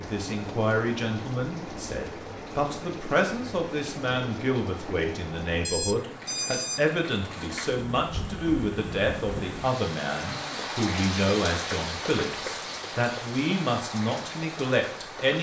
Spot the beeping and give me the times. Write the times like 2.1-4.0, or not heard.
5.6-6.8.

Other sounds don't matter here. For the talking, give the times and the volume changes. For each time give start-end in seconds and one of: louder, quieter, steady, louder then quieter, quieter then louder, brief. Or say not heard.
0.0-15.3 steady.